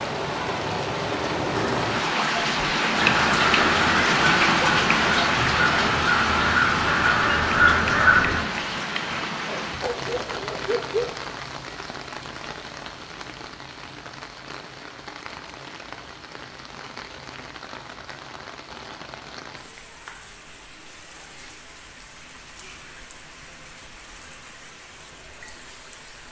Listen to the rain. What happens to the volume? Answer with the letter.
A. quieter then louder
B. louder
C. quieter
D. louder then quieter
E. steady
C.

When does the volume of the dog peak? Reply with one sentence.
The loudest moment of the dog is at 11 seconds.